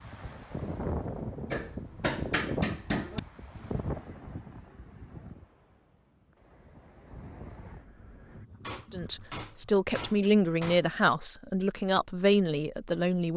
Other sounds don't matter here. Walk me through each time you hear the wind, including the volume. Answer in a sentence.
The wind can be heard from 0.0 to 8.4 s, getting quieter.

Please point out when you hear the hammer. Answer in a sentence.
The hammer can be heard from 1.5 to 3.2 s and from 8.3 to 10.8 s.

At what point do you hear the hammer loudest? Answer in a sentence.
The volume of the hammer peaks at 2 seconds.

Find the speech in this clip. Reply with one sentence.
You can hear the speech from 8.9 to 13.3 s.